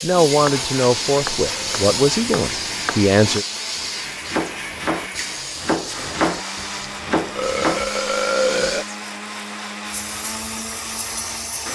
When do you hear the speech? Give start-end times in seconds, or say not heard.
0.0-3.5.